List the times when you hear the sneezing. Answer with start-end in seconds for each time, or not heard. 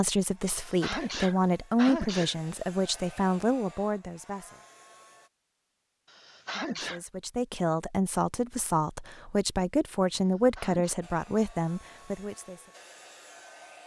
0.6-2.4, 6.0-7.0, 10.2-10.9.